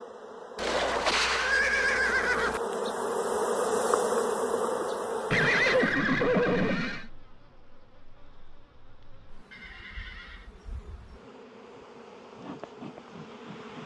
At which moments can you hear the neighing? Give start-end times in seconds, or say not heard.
0.6-2.6, 5.3-7.1, 9.5-10.5.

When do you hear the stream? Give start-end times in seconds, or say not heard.
not heard.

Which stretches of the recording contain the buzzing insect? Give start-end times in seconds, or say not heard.
0.0-13.8.